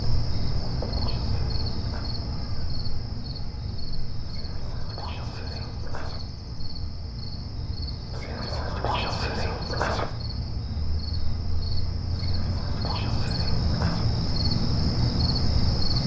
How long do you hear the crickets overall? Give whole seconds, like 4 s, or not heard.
16 s.